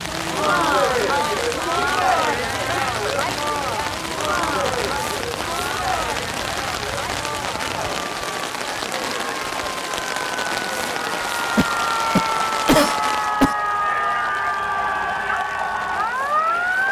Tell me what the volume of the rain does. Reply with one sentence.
The loudness of the rain goes down.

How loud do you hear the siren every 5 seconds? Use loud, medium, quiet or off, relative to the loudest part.
quiet, quiet, loud, loud.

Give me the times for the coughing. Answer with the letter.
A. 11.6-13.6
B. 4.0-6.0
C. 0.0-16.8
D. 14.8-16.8
A.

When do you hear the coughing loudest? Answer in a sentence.
The loudest moment of the coughing is at 13 seconds.